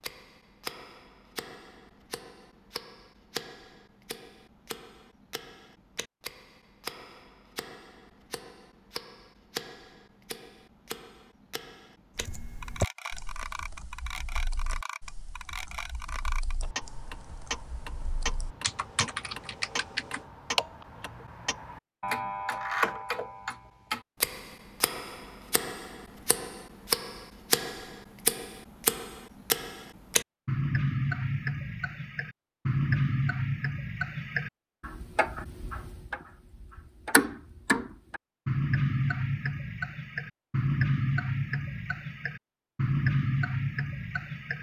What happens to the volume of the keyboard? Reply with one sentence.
The volume of the keyboard goes down, then up.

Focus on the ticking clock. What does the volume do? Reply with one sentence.
The loudness of the ticking clock goes up.